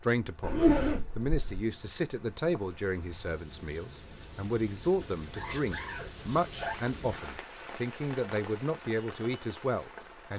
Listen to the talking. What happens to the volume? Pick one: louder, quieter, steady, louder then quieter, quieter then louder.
steady.